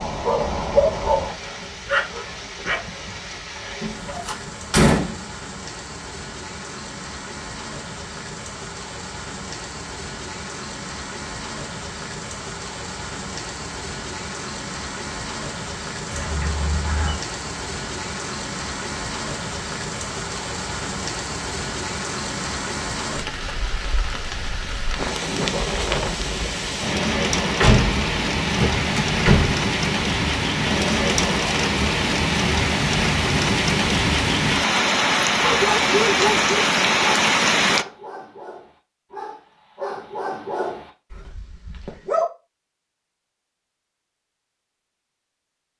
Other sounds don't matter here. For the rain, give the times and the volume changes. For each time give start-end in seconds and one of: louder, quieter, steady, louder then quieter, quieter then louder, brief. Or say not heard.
0.0-37.9 louder.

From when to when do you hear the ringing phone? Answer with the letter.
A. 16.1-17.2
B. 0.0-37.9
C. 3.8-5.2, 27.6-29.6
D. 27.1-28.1
A.